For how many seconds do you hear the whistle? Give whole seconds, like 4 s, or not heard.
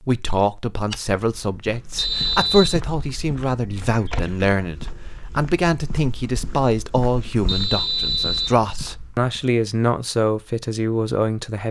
2 s.